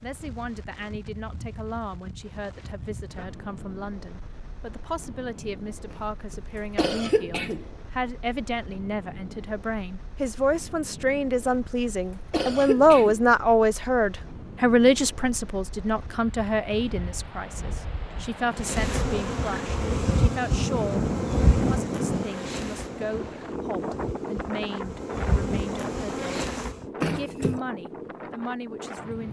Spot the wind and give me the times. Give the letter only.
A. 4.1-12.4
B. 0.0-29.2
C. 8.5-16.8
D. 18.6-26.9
B.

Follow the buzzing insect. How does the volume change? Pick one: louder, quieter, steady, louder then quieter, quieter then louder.
quieter then louder.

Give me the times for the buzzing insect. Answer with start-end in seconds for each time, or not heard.
18.6-26.9.